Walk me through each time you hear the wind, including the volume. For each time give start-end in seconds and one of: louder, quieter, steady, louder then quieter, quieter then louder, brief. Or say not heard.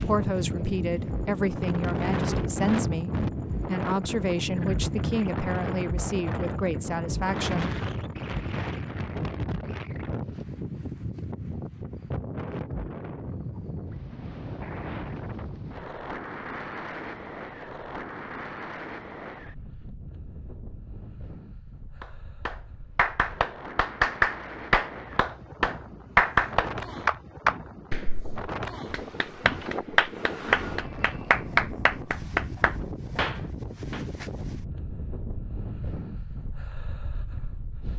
0.0-37.9 quieter.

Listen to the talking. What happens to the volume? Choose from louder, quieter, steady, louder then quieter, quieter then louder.
steady.